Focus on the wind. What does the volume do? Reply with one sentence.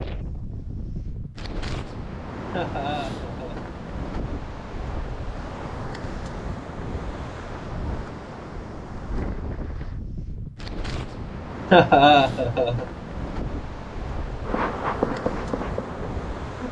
The volume of the wind stays about the same.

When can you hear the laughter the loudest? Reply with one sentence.
The loudest moment of the laughter is at 12 seconds.